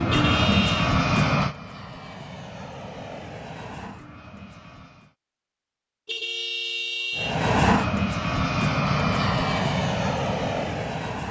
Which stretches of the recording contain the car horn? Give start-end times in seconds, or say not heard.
0.1-0.9, 6.0-7.4.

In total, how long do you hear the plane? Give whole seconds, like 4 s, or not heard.
9 s.